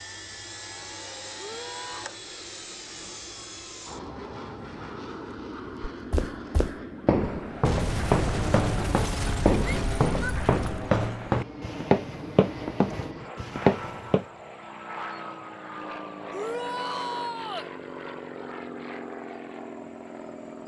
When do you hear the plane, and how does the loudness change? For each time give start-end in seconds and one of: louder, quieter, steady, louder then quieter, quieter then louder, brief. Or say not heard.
0.0-20.6 steady.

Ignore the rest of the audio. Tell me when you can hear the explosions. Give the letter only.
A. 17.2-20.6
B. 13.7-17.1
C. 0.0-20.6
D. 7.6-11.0
D.